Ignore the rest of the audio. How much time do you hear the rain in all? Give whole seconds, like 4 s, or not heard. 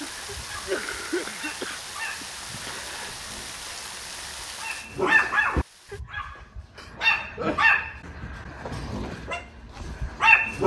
6 s.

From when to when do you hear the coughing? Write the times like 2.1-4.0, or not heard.
0.4-1.8, 6.8-7.7.